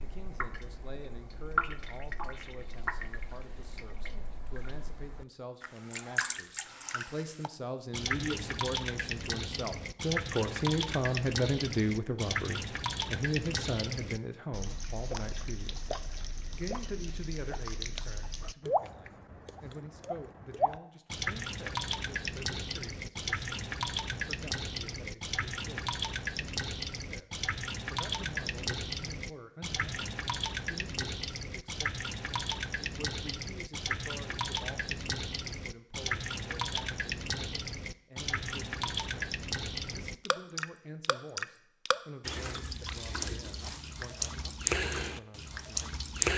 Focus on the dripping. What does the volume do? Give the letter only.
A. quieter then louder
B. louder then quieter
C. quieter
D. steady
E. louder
D.